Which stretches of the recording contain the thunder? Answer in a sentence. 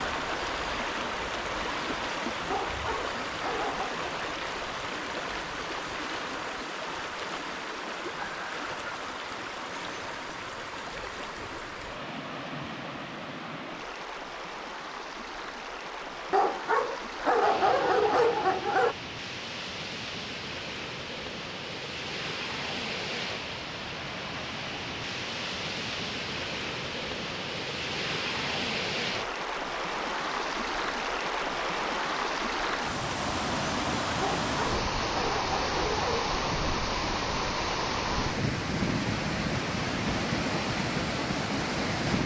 You can't hear the thunder here.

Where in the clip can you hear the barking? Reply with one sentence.
You can hear the barking from 2.5 to 4.0 s, from 16.3 to 18.9 s and from 34.2 to 36.4 s.